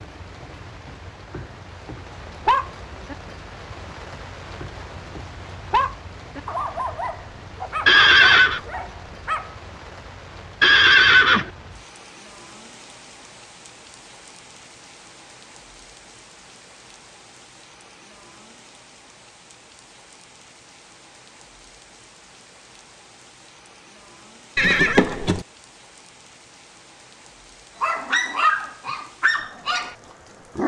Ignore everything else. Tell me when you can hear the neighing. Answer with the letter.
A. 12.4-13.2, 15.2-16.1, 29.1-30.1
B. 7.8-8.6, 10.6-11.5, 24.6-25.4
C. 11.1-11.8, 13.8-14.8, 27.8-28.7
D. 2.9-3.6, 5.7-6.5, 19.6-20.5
B.